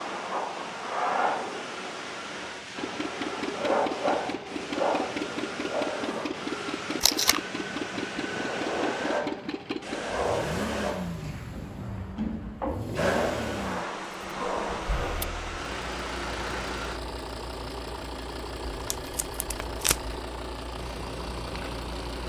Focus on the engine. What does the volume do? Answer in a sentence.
The volume of the engine stays about the same.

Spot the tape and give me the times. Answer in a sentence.
You can hear the tape from 7.0 to 7.4 s and from 18.6 to 20.2 s.